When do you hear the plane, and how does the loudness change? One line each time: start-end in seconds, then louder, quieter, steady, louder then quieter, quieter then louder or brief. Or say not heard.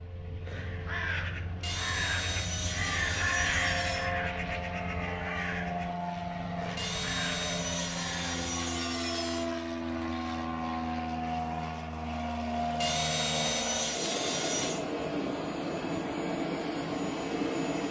0.0-17.8 louder.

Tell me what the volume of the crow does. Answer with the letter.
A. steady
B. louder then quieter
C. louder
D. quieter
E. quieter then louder
B.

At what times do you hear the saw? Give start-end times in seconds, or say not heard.
1.6-4.1, 6.8-9.4, 12.8-14.8.